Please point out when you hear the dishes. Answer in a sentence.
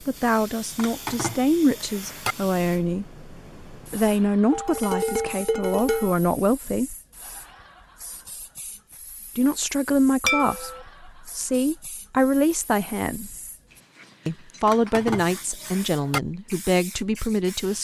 You can hear the dishes from 0.8 to 2.4 s, from 4.5 to 6.2 s, from 10.2 to 10.8 s and from 14.7 to 16.2 s.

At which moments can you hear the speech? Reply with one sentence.
The speech can be heard from 0.0 to 7.0 s, from 9.3 to 13.3 s and from 14.2 to 17.7 s.